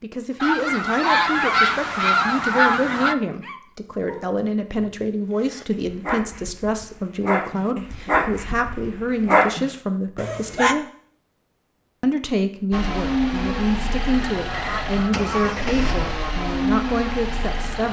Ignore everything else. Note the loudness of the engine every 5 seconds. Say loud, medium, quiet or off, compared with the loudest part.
off, off, loud, loud.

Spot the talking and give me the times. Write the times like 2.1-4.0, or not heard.
0.0-10.8, 12.0-17.8.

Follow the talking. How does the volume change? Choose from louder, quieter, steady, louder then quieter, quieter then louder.
steady.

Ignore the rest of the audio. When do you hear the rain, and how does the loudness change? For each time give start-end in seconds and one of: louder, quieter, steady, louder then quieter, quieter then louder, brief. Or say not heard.
not heard.